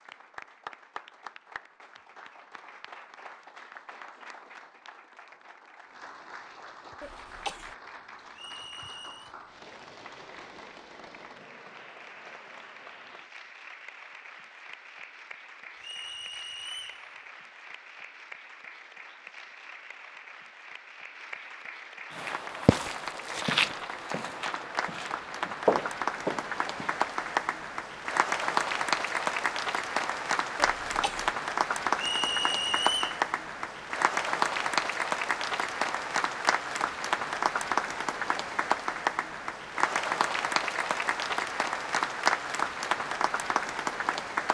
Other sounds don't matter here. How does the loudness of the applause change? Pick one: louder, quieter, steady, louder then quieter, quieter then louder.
louder.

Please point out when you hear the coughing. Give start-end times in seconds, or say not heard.
7.0-7.8, 30.6-31.4.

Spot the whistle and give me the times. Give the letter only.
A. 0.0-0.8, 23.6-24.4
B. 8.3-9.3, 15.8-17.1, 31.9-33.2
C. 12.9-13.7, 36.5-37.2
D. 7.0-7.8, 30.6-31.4
B.